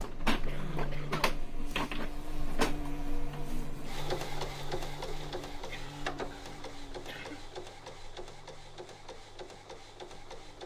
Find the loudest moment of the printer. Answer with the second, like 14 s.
2 s.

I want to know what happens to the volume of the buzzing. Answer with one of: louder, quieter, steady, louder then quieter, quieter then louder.
quieter.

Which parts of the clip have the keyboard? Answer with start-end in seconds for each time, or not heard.
not heard.